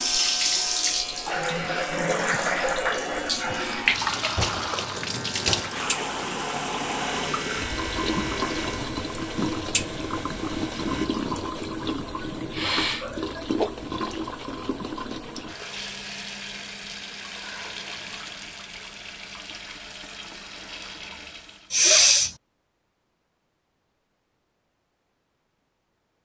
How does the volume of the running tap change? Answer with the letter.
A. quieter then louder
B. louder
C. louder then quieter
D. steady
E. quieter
E.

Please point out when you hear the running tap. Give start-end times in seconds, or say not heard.
0.0-21.8.